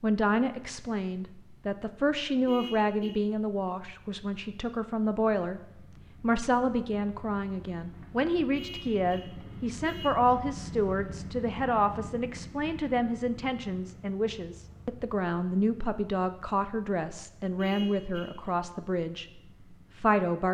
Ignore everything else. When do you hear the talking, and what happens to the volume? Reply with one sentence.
The talking can be heard from 0.0 to 20.5 s, at a steady volume.